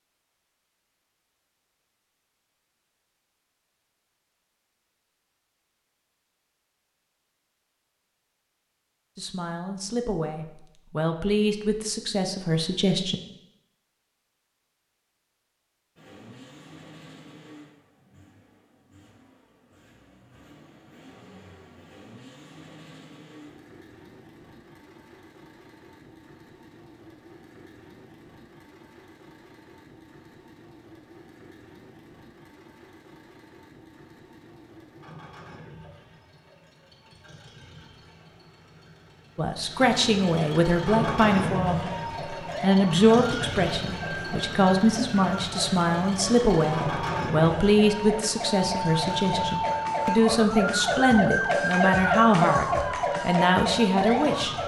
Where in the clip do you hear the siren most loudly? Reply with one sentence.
The volume of the siren peaks at 52 seconds.